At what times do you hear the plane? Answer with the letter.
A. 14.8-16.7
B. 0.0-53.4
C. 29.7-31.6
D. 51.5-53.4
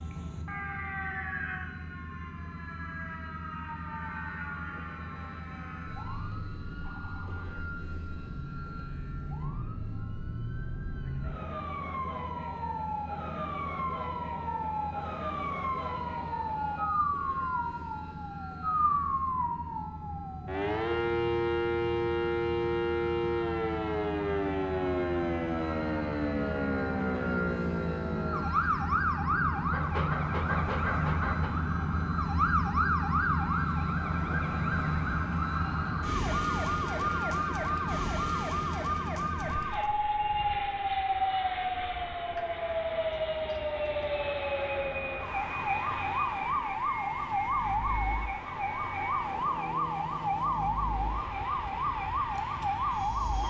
B.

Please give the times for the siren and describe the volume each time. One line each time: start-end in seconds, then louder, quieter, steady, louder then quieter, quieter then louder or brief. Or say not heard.
0.0-53.4 louder.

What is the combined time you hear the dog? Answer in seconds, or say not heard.
2 s.